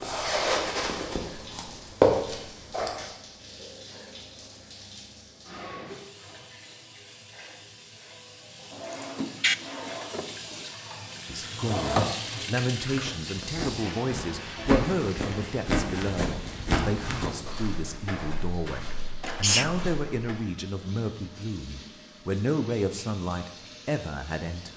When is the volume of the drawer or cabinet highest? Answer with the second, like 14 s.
9 s.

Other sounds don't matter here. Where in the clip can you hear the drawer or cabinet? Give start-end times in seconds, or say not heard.
8.7-10.7.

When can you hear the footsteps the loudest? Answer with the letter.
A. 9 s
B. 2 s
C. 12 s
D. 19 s
B.